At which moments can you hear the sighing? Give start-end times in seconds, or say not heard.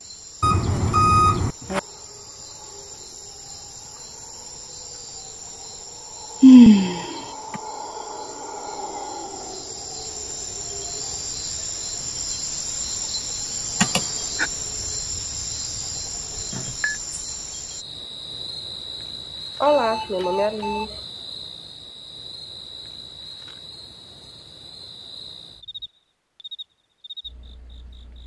6.4-7.2, 13.8-14.4, 19.6-20.9.